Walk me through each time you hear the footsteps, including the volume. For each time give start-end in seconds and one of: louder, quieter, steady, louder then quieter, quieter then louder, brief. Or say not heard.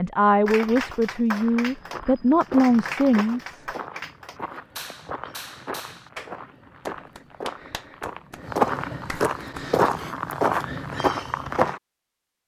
1.3-11.8 louder.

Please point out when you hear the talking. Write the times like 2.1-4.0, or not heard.
0.0-3.6.